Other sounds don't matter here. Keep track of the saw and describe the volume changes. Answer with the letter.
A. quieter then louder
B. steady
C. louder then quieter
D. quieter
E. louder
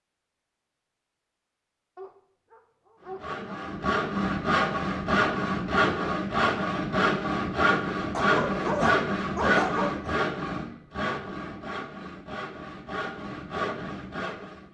D.